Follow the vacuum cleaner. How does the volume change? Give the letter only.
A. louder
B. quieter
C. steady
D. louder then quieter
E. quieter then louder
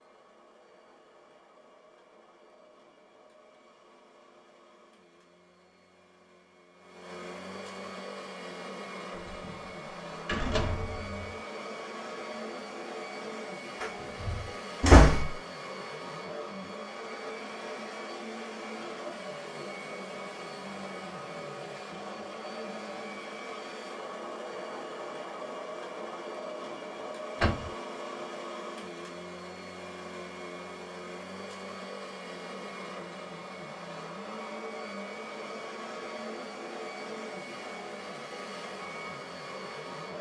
A.